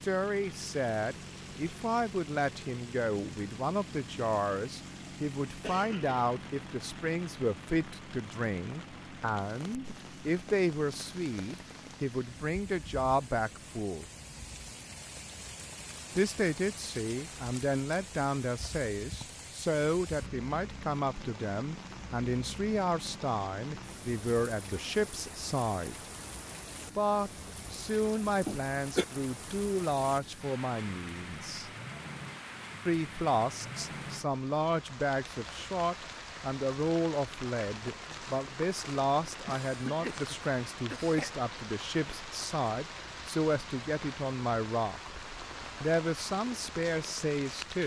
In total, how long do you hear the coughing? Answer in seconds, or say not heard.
3 s.